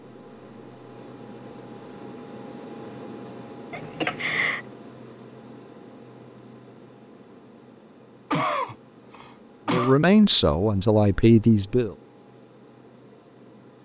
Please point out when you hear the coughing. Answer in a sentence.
The coughing can be heard from 3.7 to 4.6 s and from 8.3 to 9.9 s.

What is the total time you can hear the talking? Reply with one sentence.
The talking can be heard for 2 seconds in total.